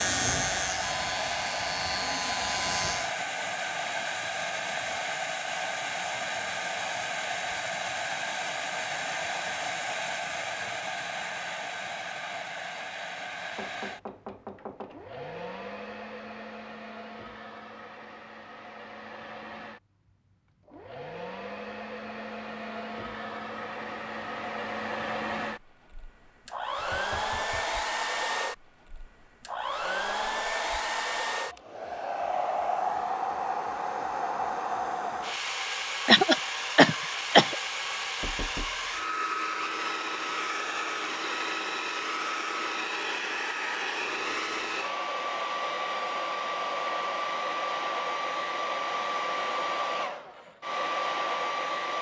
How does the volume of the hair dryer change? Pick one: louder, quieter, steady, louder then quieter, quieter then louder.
quieter then louder.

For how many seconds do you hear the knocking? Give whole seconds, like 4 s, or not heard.
3 s.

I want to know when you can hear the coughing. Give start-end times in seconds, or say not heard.
36.0-37.5.